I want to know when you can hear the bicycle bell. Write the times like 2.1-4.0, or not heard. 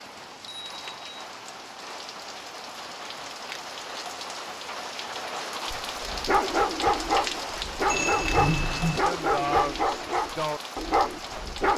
0.1-1.2, 7.8-9.0.